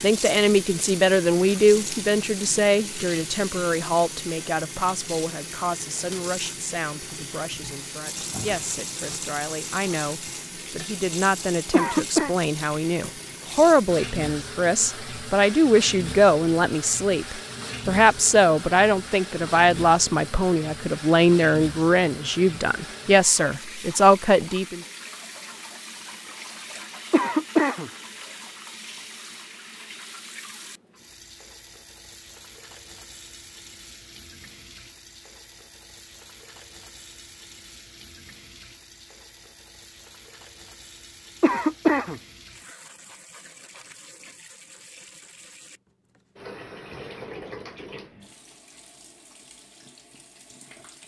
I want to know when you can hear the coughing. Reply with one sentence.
You can hear the coughing from 11.7 to 12.3 s, from 27.1 to 27.9 s and from 41.4 to 42.2 s.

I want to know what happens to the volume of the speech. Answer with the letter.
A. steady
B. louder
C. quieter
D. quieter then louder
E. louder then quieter
D.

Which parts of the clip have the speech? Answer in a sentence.
The speech can be heard from 0.0 to 24.8 s.